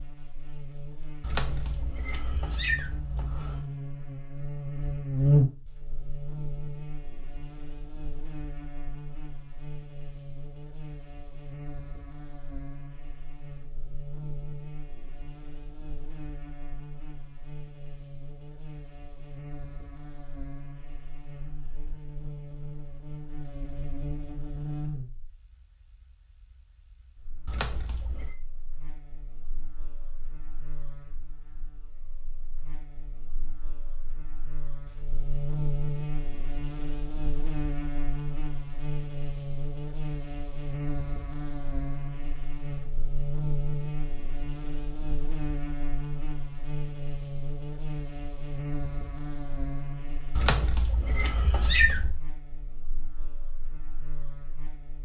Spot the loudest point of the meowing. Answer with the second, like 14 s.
52 s.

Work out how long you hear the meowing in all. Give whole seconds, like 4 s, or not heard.
5 s.